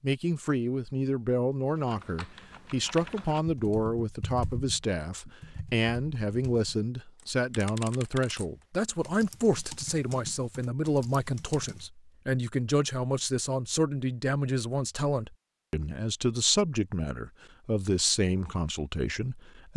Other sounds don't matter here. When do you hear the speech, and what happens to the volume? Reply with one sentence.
The speech can be heard from 0.0 to 19.7 s, at a steady volume.